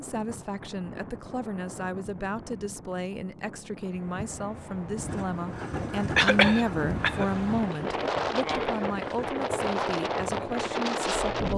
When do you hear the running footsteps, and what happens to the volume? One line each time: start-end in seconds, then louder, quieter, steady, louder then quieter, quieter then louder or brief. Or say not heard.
not heard.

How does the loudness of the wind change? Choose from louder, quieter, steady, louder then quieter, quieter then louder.
louder.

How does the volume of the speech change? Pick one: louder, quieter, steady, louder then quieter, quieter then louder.
louder then quieter.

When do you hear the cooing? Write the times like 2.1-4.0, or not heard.
not heard.